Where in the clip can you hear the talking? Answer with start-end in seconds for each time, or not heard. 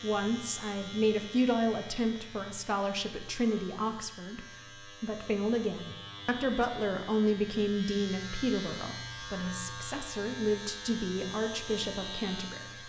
0.0-12.8.